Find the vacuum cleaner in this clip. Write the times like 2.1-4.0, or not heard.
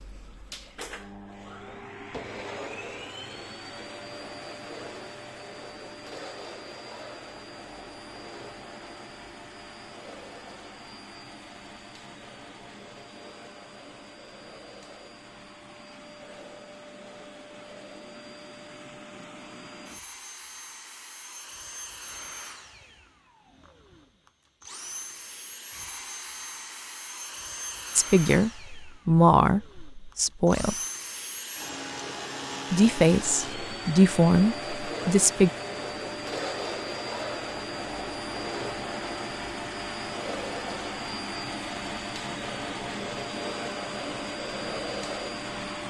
0.0-45.8.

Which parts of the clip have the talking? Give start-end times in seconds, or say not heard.
27.9-30.8, 32.7-35.5.